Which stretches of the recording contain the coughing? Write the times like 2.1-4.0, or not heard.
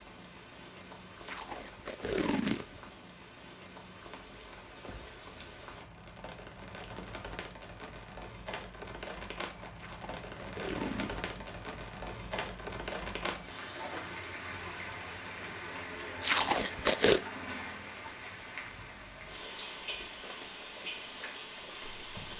not heard.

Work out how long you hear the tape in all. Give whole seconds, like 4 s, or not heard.
4 s.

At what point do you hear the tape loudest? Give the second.
17 s.